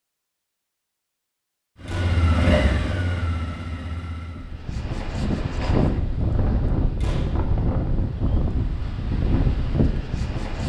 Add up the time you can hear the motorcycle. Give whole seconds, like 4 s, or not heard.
3 s.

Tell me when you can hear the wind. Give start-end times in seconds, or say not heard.
4.3-10.6.